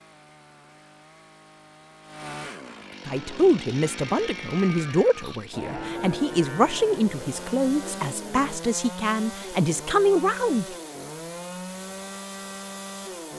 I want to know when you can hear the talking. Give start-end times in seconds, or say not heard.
3.0-10.8.